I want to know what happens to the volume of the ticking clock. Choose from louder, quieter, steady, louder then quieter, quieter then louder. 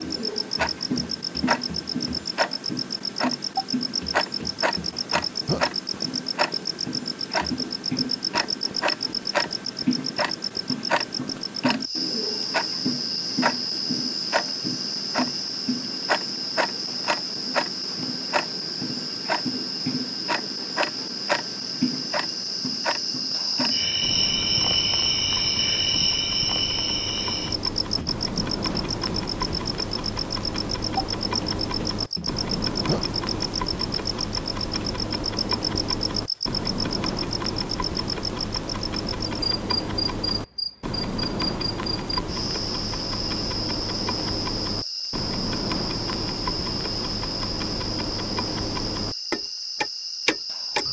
steady.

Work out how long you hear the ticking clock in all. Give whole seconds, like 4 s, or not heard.
51 s.